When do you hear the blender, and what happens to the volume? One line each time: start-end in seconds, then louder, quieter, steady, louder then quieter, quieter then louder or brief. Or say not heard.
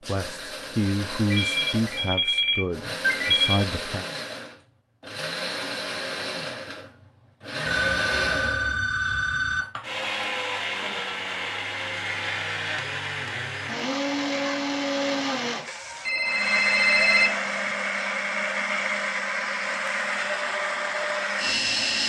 0.0-22.0 louder.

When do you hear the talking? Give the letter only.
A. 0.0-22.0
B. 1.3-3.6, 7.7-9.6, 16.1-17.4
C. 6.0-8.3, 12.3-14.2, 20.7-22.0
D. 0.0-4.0
D.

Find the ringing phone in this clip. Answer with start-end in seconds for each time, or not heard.
1.3-3.6, 7.7-9.6, 16.1-17.4.